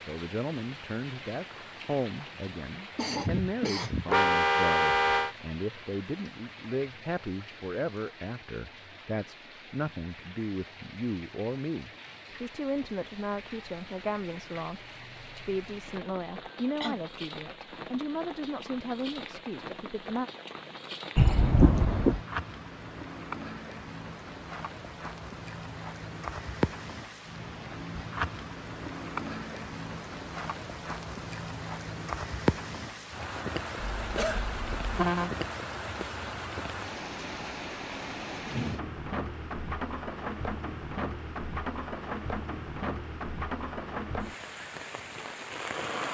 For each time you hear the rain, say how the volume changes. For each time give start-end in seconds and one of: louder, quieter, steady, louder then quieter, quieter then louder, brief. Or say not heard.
0.0-46.0 louder.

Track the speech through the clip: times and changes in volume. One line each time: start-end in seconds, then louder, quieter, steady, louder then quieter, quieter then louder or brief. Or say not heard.
0.0-20.3 steady.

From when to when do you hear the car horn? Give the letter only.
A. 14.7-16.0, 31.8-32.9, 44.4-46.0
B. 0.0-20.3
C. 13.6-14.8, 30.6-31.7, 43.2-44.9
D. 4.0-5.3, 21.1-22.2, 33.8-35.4
D.